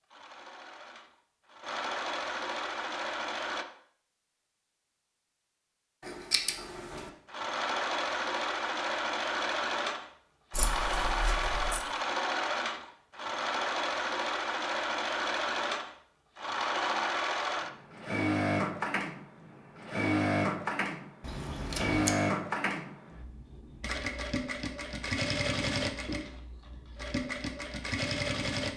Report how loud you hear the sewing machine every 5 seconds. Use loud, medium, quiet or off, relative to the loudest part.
medium, loud, loud, loud, loud, loud.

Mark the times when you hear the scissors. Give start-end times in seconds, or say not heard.
6.0-7.1, 10.5-11.8, 21.2-22.1.